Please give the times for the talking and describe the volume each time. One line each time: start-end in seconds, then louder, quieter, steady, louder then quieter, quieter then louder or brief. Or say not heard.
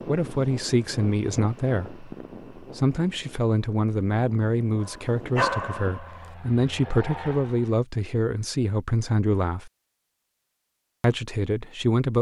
0.1-9.7 steady
11.0-12.1 brief.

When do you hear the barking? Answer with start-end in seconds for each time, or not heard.
4.8-6.3.